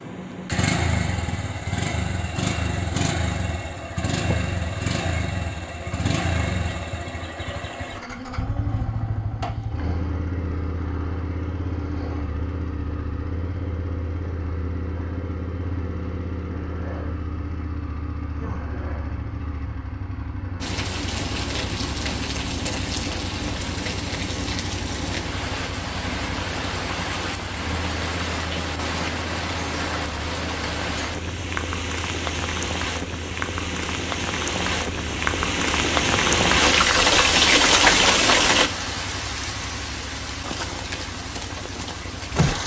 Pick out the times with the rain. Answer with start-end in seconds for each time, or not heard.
20.6-42.6.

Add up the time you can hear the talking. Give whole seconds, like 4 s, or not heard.
not heard.